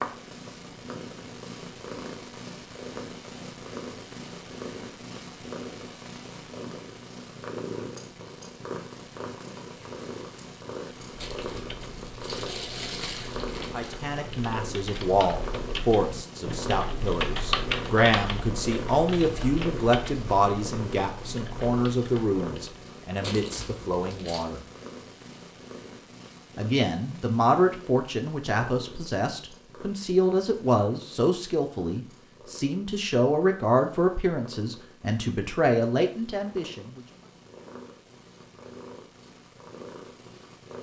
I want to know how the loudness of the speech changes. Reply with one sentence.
The loudness of the speech stays about the same.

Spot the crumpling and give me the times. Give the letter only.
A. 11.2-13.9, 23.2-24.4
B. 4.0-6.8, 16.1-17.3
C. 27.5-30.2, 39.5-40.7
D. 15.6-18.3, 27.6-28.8
A.